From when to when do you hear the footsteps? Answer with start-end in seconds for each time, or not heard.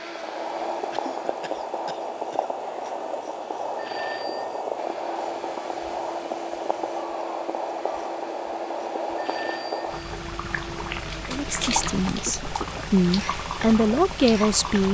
not heard.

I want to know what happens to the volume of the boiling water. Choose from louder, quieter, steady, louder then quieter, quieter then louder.
steady.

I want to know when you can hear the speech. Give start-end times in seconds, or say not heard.
11.3-14.8.